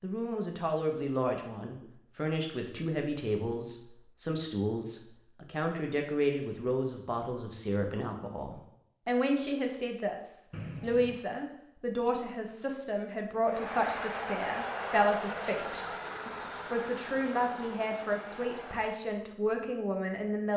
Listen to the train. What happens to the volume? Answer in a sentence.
The volume of the train goes down.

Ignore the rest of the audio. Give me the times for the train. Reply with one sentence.
You can hear the train from 13.4 to 19.0 s.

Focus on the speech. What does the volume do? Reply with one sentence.
The volume of the speech stays about the same.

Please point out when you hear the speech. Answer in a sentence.
You can hear the speech from 0.0 to 20.5 s.